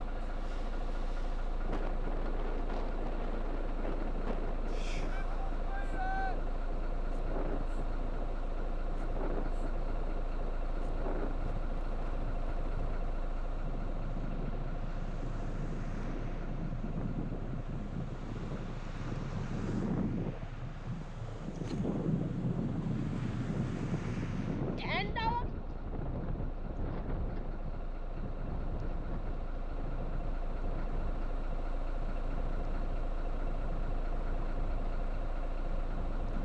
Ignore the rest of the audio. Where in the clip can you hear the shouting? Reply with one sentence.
The shouting can be heard from 5.1 to 6.4 s and from 24.8 to 25.4 s.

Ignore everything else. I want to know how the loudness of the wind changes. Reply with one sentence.
The volume of the wind goes up, then down.